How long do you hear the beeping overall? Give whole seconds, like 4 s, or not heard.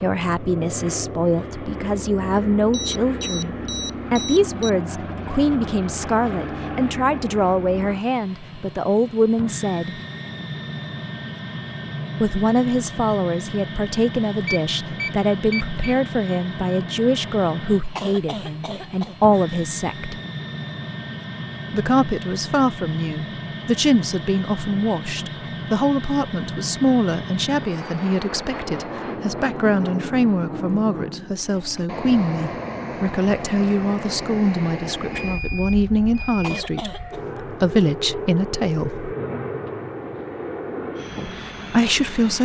5 s.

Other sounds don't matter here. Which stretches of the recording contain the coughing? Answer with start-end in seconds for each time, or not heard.
17.9-19.1, 36.4-37.2.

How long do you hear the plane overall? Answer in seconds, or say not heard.
42 s.